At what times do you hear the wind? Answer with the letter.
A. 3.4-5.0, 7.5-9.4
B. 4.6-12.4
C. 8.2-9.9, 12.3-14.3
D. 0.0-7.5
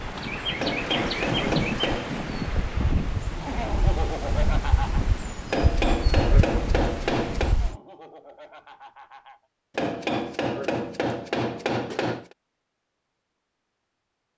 D.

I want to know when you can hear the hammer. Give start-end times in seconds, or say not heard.
0.6-2.2, 5.5-7.6, 9.8-12.3.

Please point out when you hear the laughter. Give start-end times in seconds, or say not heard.
3.4-5.0, 7.5-9.4.